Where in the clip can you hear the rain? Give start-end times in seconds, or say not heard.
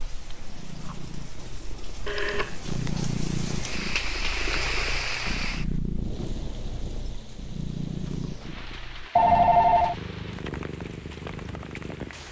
0.0-12.2.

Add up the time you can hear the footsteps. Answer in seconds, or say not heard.
not heard.